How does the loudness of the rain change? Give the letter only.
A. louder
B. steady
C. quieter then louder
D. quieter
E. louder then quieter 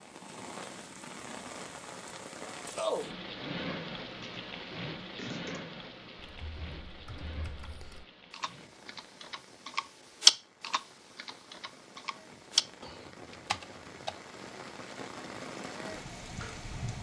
C.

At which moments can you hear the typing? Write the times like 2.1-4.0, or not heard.
4.0-14.2.